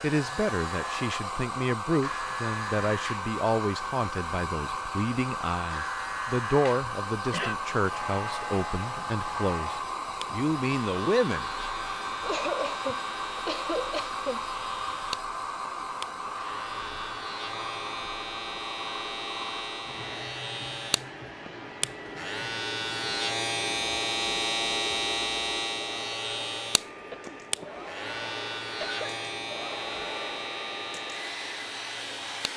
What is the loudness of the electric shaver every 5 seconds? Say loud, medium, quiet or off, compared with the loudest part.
medium, medium, medium, medium, loud, loud, medium.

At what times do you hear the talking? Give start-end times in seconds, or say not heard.
0.0-11.5.